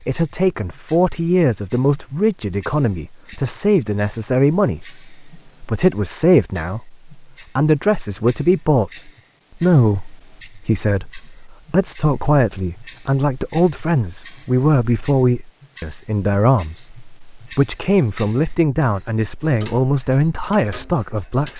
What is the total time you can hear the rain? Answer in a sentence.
The rain can't be heard in this clip.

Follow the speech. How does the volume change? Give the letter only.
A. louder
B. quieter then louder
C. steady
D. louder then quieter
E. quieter
C.